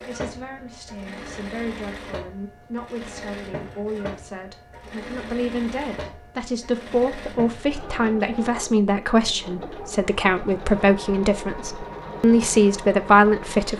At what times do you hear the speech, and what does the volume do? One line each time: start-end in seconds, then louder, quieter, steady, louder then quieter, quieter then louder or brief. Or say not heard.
0.1-13.7 louder.